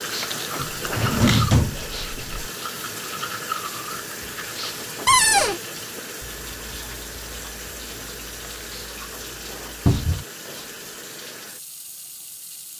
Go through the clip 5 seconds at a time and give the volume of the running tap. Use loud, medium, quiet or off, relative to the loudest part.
loud, loud, medium.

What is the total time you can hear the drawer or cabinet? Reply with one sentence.
You can hear the drawer or cabinet for 3 seconds altogether.